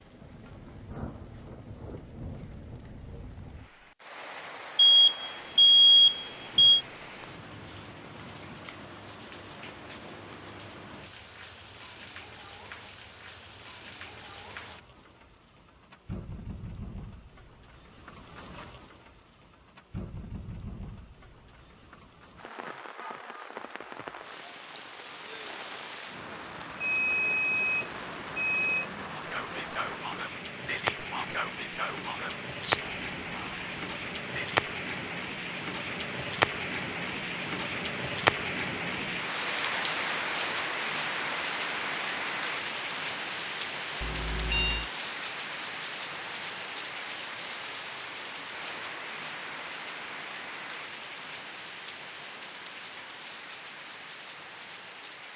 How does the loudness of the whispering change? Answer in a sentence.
The volume of the whispering goes down.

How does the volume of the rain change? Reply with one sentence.
The volume of the rain goes up, then down.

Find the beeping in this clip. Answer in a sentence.
You can hear the beeping from 4.8 to 6.8 s, from 26.8 to 28.9 s and from 44.0 to 44.9 s.